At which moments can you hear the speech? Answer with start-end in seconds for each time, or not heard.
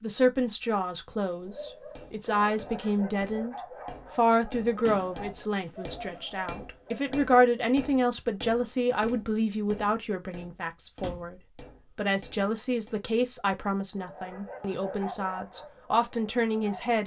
0.0-17.0.